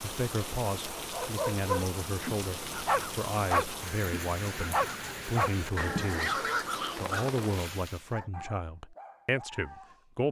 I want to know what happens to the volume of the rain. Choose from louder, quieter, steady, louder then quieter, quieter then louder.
steady.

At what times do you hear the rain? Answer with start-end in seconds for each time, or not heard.
0.0-8.2.